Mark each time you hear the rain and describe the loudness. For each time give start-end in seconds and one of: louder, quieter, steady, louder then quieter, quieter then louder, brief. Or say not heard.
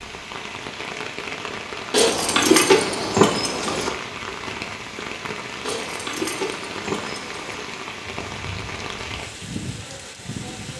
0.0-10.7 steady.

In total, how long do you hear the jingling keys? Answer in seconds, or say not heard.
4 s.